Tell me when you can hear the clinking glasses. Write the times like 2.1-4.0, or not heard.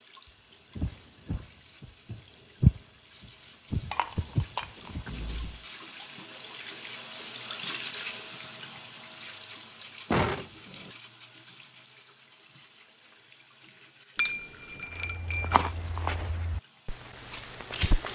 3.9-4.7, 14.2-15.7.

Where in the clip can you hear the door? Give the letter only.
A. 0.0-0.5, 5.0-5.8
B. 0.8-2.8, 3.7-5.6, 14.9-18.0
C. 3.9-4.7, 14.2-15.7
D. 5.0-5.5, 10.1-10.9
D.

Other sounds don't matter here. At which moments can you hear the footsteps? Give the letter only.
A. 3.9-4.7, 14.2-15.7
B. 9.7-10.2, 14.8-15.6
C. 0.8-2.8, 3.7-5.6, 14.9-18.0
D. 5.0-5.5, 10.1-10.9
C.